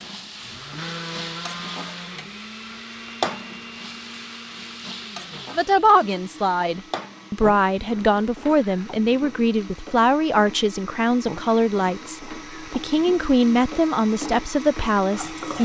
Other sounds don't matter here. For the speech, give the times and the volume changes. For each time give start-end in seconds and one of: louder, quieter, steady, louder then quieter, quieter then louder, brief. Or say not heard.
5.5-15.6 steady.